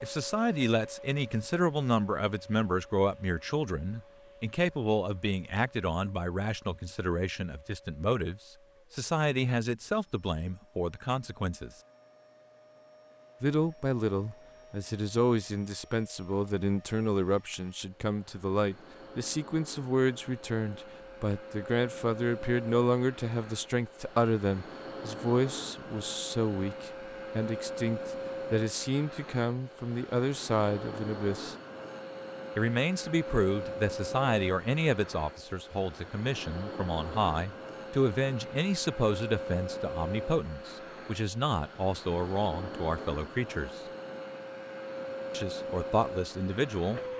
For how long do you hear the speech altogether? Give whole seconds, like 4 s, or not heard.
43 s.